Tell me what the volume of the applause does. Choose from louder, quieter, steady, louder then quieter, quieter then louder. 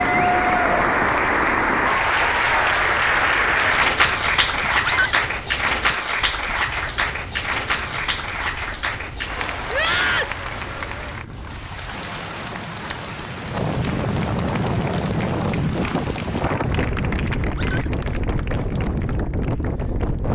quieter.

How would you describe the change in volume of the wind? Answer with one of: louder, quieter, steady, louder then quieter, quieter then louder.
louder.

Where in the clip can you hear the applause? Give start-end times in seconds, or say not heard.
0.0-20.3.